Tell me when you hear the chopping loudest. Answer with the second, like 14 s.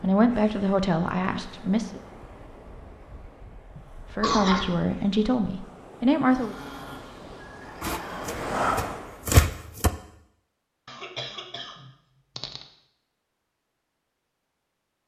9 s.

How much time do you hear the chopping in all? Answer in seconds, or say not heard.
2 s.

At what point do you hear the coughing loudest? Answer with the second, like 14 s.
4 s.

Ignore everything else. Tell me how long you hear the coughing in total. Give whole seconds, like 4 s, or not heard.
3 s.